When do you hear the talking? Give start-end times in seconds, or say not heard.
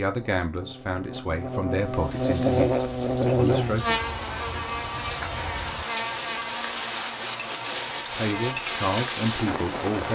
0.0-4.0, 8.1-10.0.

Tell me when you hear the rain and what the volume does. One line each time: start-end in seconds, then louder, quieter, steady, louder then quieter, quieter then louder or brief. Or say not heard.
1.7-10.0 louder.